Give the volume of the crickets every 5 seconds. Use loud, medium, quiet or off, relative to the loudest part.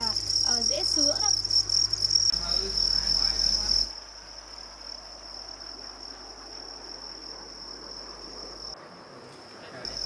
loud, quiet.